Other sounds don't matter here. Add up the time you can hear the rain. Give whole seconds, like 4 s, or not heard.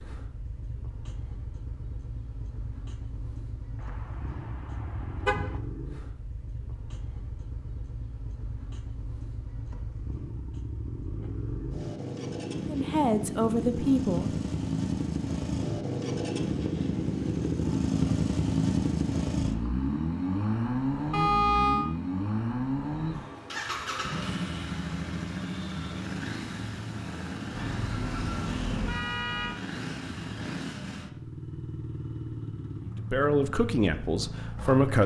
not heard.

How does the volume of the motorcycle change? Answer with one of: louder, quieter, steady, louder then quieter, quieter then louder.
louder then quieter.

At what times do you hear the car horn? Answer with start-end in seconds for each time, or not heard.
3.8-5.6, 21.1-21.9, 27.5-29.6.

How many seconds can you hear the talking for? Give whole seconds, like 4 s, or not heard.
4 s.